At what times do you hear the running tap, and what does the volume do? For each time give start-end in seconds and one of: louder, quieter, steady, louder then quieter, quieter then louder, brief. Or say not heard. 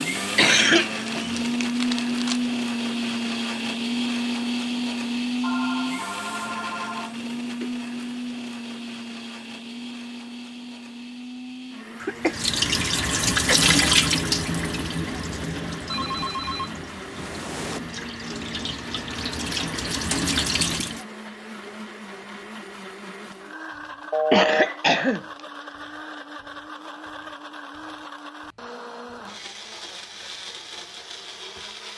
12.2-21.1 quieter then louder.